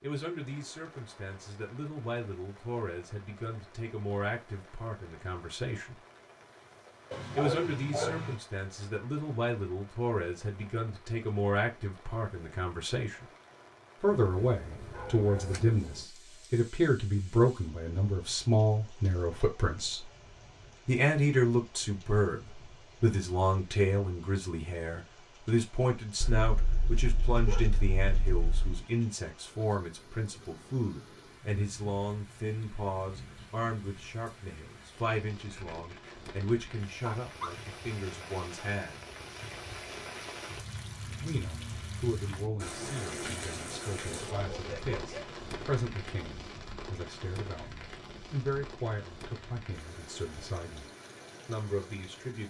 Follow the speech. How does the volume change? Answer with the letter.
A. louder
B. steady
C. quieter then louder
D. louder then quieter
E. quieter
D.